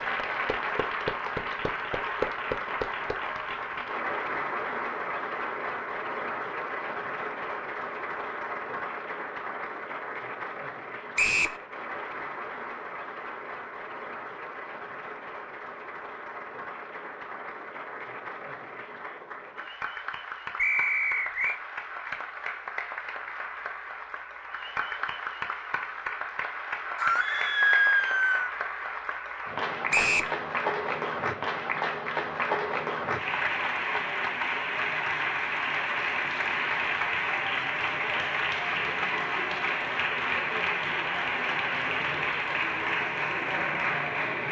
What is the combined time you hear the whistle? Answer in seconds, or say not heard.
2 s.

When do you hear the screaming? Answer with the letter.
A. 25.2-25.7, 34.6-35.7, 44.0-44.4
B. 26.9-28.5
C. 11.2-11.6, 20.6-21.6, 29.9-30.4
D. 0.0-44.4
B.